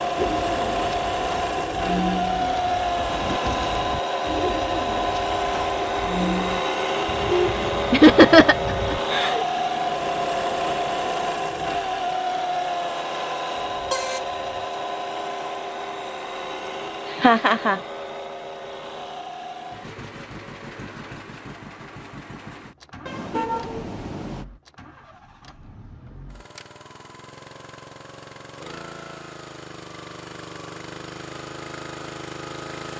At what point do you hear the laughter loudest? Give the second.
8 s.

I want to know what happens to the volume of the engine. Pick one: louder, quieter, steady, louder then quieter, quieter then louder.
quieter.